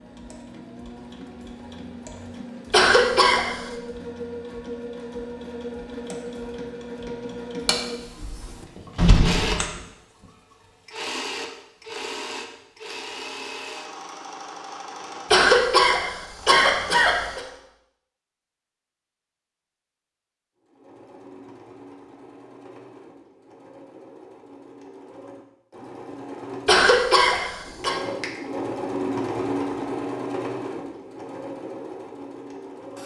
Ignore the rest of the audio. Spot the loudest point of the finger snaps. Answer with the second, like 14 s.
9 s.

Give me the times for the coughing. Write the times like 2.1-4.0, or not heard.
2.7-3.7, 15.3-17.4, 26.6-27.9.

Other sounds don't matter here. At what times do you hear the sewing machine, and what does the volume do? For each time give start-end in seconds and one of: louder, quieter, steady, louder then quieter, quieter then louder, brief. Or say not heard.
0.0-17.6 louder then quieter
20.6-33.0 louder then quieter.